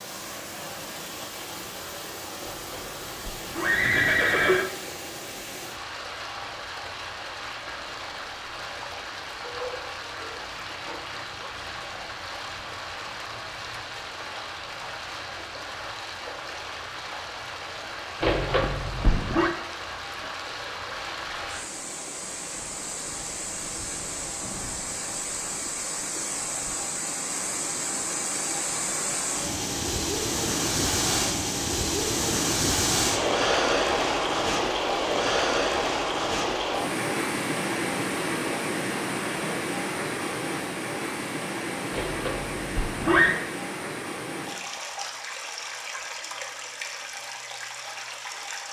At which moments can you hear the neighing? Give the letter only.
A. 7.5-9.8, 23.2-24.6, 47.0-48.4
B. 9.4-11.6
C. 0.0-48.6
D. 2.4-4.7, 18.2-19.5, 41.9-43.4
D.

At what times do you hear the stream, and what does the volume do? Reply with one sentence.
You can hear the stream from 0.0 to 48.6 s, getting louder then quieter.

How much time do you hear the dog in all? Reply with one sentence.
You can hear the dog for 2 seconds altogether.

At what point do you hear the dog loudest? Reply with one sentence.
The loudest moment of the dog is at 10 seconds.